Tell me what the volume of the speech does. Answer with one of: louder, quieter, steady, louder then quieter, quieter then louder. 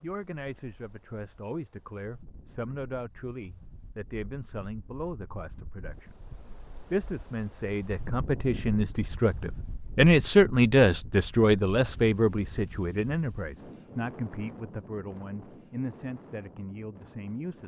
louder then quieter.